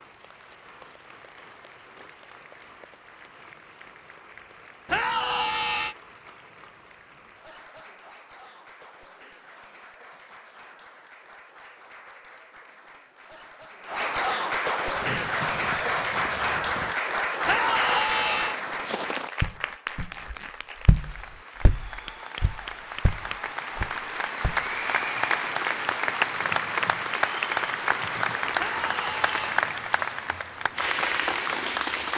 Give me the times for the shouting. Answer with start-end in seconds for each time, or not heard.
4.8-6.0, 17.4-18.6, 28.6-29.6.